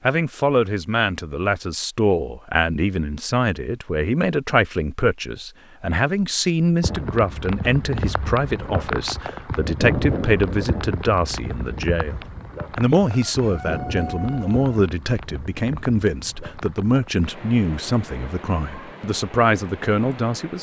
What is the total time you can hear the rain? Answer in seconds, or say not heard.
14 s.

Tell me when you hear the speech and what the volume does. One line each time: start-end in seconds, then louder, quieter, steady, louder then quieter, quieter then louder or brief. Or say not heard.
0.0-20.5 steady.